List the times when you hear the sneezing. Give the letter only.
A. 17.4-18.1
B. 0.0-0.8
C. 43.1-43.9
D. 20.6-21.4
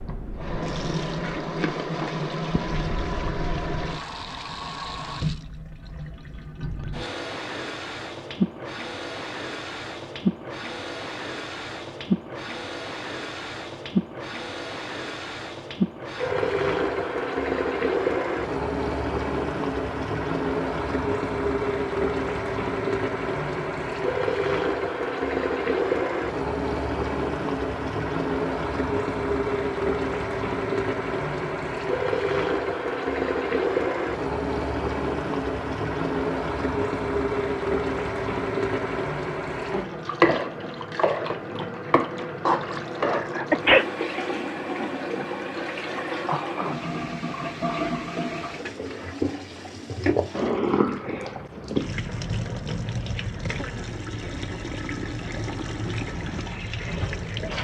C.